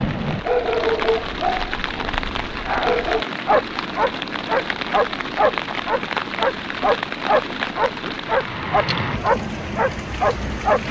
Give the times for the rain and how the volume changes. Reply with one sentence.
You can hear the rain from 0.0 to 10.8 s, at a steady volume.